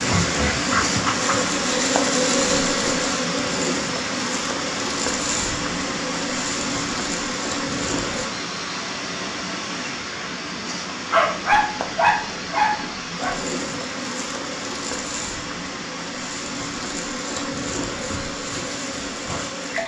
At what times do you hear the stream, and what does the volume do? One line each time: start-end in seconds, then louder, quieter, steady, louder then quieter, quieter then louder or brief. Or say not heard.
0.0-19.8 quieter.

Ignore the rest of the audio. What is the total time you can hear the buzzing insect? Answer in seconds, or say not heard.
15 s.